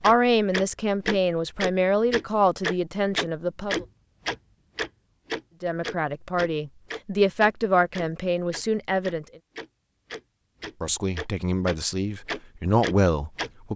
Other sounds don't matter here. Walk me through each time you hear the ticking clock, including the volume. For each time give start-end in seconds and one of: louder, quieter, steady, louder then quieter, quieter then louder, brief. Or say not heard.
0.0-13.5 quieter then louder.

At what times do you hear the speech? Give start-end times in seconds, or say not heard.
0.0-3.9, 5.6-9.2, 10.8-13.7.